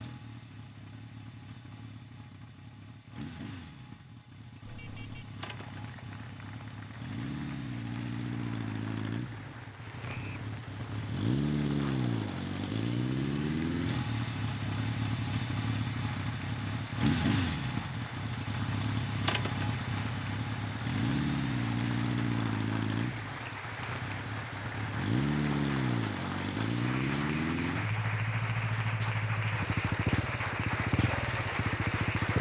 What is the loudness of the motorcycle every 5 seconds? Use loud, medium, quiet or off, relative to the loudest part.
quiet, medium, loud, loud, loud, loud, loud.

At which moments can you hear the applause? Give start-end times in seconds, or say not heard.
5.3-32.3.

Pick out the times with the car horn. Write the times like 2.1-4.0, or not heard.
4.7-5.3.